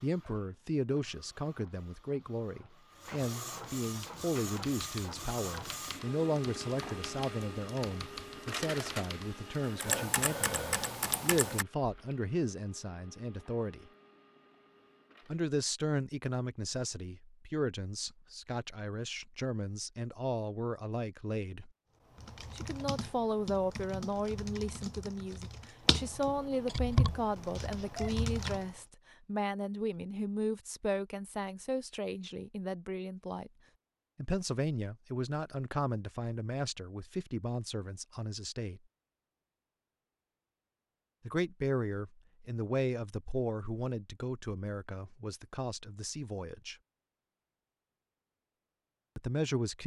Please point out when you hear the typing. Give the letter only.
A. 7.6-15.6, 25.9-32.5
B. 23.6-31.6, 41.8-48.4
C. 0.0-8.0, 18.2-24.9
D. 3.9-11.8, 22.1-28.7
D.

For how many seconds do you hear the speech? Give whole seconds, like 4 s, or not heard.
42 s.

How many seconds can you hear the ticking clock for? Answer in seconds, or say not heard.
not heard.